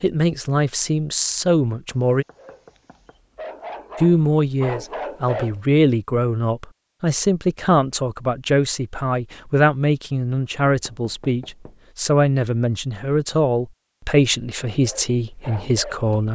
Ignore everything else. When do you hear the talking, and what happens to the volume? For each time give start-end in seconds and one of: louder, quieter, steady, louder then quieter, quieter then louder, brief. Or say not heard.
0.0-2.2 brief
4.0-16.2 steady.